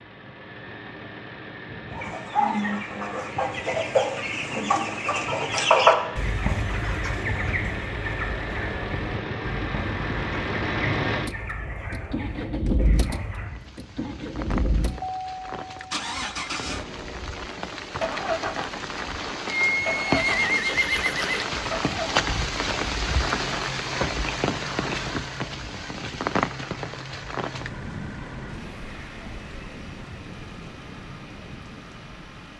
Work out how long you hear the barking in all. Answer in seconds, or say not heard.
not heard.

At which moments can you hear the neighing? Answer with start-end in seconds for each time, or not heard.
19.6-21.4.